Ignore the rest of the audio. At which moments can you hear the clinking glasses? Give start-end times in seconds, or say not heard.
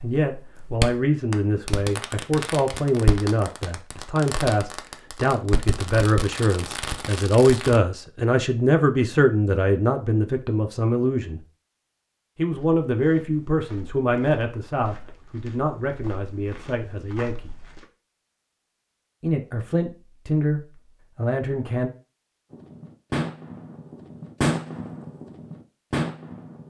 not heard.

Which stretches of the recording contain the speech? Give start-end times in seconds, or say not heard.
0.0-11.4, 12.3-17.6, 19.2-21.9.